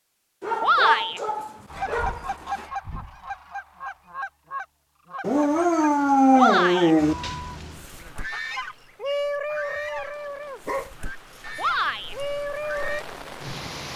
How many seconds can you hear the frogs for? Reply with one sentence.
The frogs can't be heard in this clip.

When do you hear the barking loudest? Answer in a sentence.
The loudest moment of the barking is at 6 seconds.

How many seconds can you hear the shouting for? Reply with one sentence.
You can hear the shouting for 2 seconds altogether.